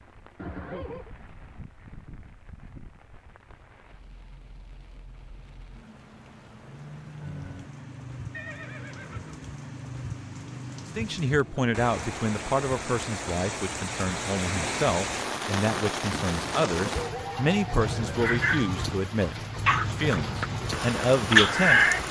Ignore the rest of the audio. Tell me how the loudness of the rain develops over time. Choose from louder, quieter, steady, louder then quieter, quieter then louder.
louder.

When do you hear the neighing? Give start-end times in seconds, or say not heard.
0.3-1.1, 8.3-9.4, 16.2-18.3.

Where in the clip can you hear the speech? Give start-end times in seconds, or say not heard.
10.9-21.9.